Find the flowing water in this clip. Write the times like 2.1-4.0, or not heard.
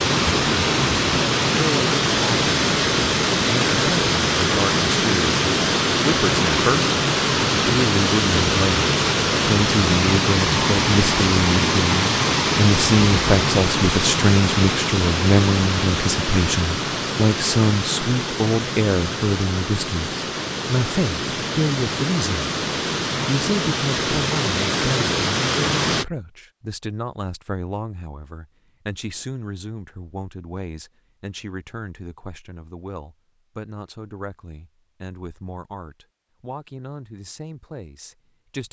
0.0-26.1.